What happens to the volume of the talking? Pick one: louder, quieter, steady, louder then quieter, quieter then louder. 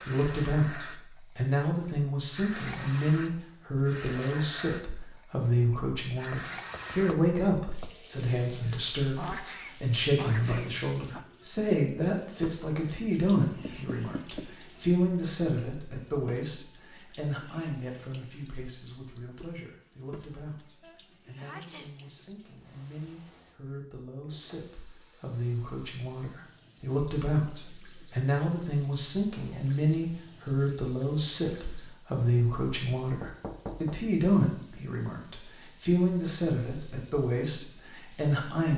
quieter then louder.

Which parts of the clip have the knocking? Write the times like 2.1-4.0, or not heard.
6.3-8.0, 13.4-14.5, 33.2-34.0.